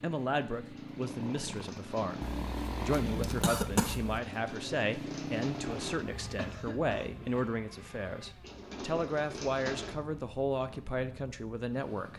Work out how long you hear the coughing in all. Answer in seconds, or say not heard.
3 s.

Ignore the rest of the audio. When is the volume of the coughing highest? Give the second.
4 s.